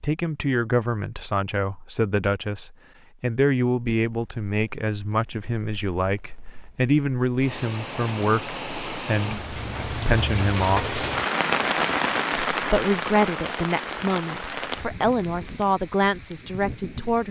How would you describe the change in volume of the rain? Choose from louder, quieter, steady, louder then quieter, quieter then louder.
louder then quieter.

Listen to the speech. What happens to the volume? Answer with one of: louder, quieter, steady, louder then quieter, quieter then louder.
steady.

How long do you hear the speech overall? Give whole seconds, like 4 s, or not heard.
16 s.